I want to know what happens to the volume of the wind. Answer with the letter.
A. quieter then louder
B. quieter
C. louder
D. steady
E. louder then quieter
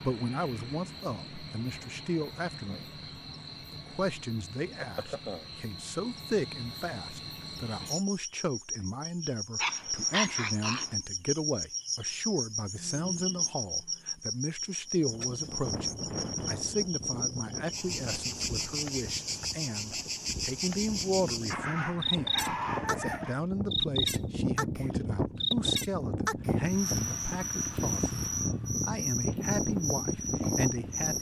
A.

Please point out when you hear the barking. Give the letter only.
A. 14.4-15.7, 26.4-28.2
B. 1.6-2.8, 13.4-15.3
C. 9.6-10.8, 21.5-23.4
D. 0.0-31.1
C.